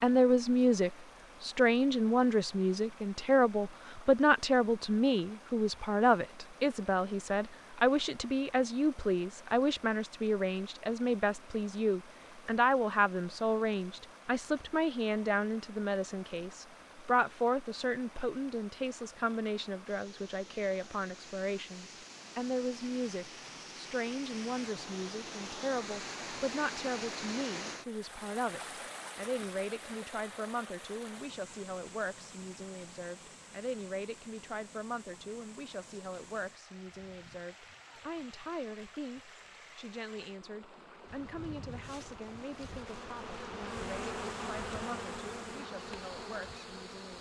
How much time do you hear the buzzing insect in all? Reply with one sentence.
You can hear the buzzing insect for 6 seconds altogether.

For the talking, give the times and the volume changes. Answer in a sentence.
You can hear the talking from 0.0 to 47.1 s, getting quieter.